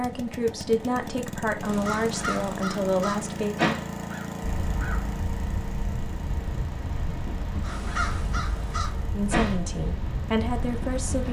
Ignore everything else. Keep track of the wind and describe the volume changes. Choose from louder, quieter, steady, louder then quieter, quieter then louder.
steady.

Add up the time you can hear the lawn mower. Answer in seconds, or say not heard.
11 s.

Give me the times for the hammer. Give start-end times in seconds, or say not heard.
not heard.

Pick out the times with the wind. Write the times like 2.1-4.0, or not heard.
4.4-11.2.